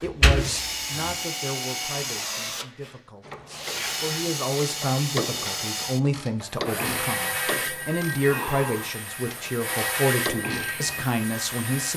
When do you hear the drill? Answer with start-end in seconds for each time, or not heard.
0.0-11.9.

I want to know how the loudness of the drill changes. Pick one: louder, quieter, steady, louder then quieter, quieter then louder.
steady.